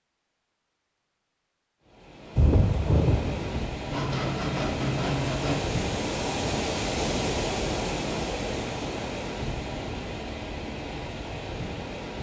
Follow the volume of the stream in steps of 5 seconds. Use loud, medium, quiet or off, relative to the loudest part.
medium, loud, medium.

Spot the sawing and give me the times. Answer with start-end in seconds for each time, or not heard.
3.9-5.6.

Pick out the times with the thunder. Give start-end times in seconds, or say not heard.
2.4-3.6.